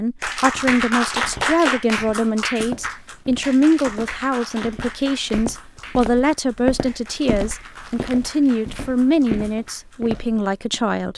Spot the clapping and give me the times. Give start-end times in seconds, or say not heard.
0.2-10.0.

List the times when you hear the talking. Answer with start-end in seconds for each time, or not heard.
0.0-11.1.